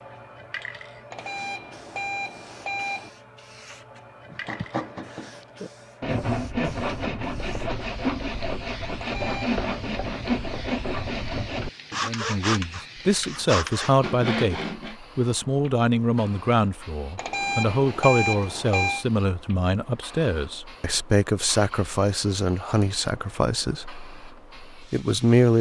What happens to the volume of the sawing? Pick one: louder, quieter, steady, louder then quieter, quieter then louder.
steady.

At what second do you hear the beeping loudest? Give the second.
18 s.